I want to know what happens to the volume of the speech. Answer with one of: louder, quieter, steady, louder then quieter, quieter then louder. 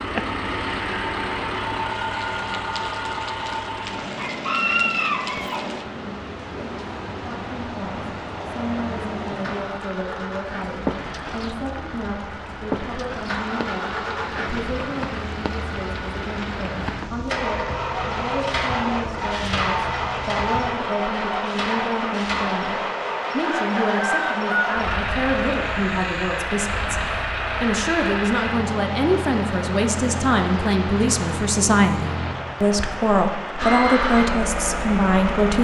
louder.